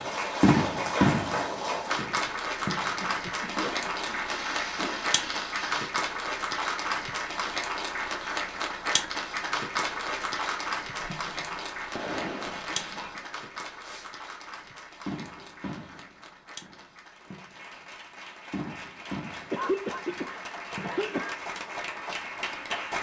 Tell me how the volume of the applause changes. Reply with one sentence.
The volume of the applause goes down, then up.